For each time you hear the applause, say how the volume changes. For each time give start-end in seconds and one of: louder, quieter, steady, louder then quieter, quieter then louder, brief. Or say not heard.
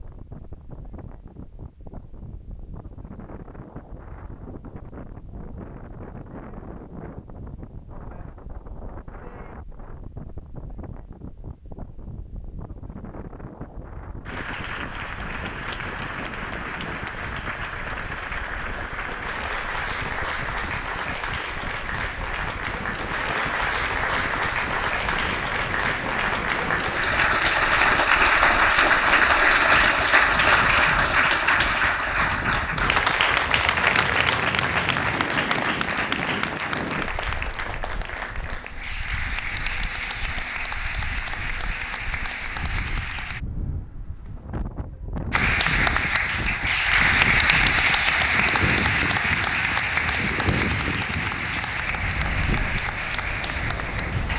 14.2-43.4 louder then quieter
45.3-54.3 quieter.